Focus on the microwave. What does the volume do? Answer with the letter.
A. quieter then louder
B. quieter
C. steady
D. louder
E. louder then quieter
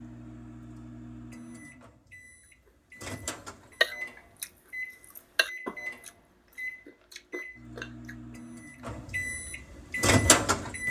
D.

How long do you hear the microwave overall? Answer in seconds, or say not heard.
11 s.